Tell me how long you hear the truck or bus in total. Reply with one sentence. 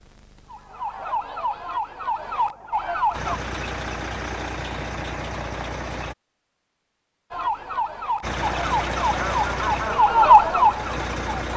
You can hear the truck or bus for 6 seconds altogether.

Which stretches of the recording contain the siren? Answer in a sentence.
The siren can be heard from 0.0 to 3.4 s and from 7.3 to 11.5 s.